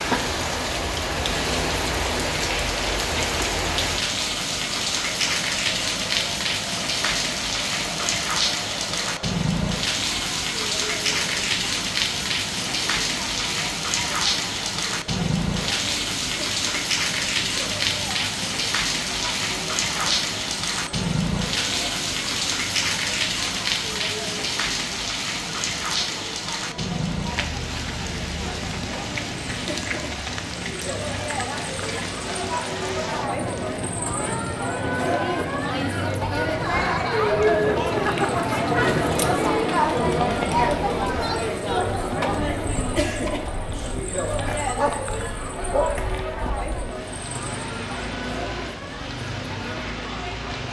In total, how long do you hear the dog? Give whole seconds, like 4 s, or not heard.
2 s.